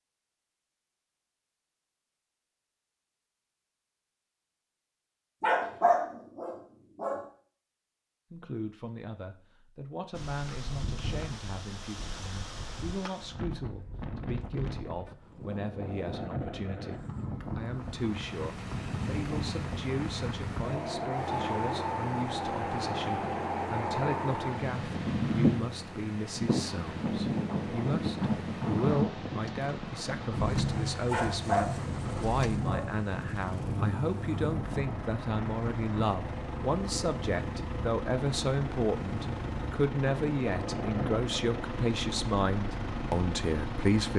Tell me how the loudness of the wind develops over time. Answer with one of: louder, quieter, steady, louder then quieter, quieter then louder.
louder then quieter.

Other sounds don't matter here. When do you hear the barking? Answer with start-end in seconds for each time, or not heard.
5.4-7.2, 31.1-32.9.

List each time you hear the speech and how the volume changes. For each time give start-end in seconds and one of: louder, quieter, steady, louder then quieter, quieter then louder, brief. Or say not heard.
8.3-44.1 louder.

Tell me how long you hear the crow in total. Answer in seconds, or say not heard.
not heard.